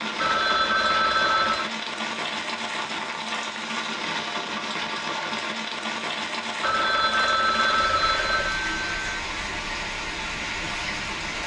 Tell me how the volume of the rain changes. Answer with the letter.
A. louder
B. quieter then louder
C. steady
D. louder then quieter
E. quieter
C.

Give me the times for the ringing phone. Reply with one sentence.
You can hear the ringing phone from 0.1 to 1.7 s and from 6.6 to 9.2 s.